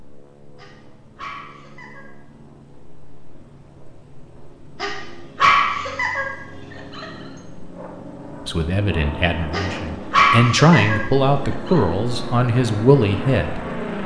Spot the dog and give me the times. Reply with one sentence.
You can hear the dog from 0.6 to 2.1 s, from 4.8 to 7.0 s and from 9.5 to 11.8 s.